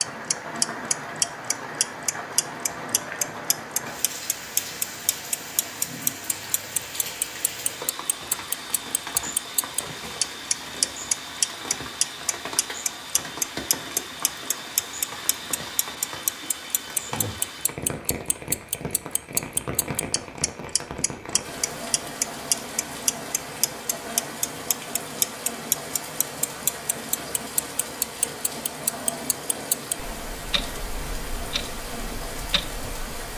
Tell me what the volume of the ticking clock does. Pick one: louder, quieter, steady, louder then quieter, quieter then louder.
quieter.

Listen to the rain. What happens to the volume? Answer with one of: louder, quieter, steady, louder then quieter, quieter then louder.
steady.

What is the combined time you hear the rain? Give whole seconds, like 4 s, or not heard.
33 s.